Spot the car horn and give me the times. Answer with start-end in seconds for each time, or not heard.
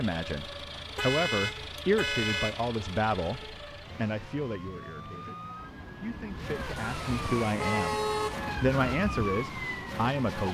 0.9-2.7, 6.8-8.4.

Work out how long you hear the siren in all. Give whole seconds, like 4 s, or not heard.
10 s.